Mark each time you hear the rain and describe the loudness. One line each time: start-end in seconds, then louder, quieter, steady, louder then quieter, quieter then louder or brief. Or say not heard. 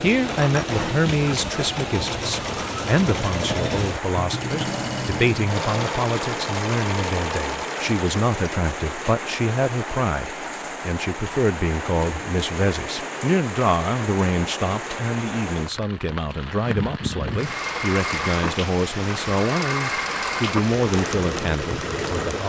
0.0-22.4 steady.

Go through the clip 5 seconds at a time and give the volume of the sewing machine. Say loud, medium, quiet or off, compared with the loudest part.
loud, loud, off, loud, loud.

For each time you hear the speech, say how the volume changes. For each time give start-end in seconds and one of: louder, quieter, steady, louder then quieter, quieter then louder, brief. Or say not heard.
0.0-22.4 steady.